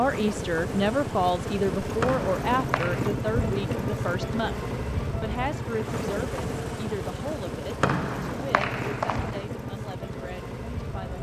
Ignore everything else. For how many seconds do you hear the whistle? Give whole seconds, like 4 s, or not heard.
3 s.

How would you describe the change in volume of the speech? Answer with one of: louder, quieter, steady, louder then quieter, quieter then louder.
quieter.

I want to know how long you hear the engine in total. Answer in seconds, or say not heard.
11 s.